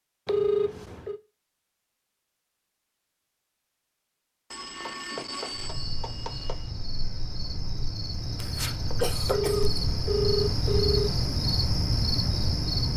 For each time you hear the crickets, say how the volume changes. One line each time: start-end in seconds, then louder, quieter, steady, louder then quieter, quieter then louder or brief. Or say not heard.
5.5-12.9 louder.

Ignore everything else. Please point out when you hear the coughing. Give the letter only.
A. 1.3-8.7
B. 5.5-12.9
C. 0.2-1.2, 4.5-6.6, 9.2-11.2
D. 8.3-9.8
D.